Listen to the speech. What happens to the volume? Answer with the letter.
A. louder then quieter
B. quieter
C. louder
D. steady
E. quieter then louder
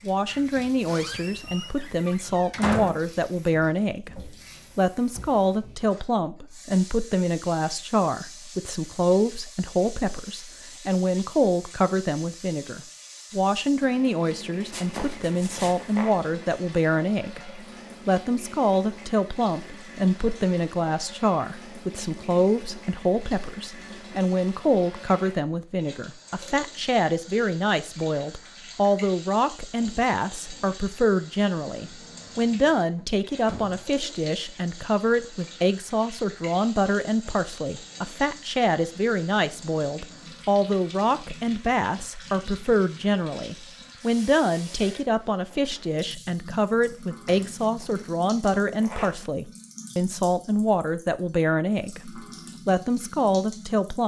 D.